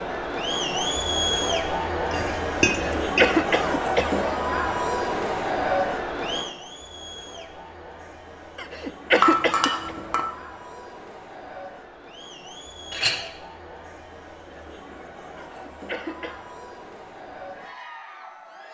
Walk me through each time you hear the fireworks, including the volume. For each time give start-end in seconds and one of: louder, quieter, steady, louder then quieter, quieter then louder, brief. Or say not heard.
not heard.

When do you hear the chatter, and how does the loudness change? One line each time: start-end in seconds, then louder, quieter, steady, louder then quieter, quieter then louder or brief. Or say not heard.
0.0-18.6 quieter.